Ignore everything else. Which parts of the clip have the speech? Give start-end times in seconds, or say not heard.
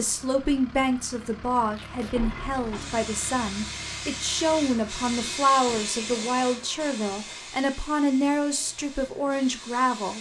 0.0-10.1.